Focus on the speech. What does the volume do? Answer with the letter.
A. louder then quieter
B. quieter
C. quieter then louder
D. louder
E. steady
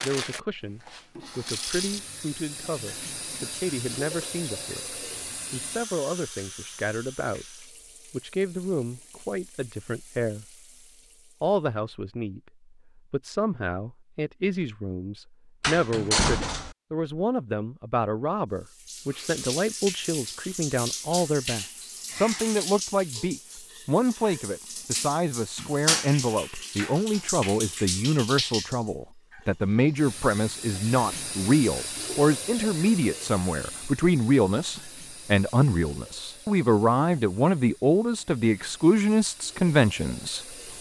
D.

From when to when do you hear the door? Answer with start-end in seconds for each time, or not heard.
15.6-16.8.